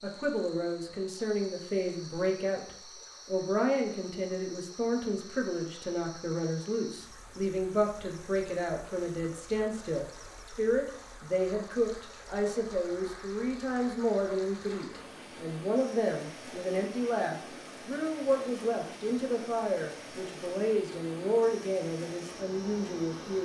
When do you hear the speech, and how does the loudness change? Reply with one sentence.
The speech can be heard from 0.0 to 23.4 s, at a steady volume.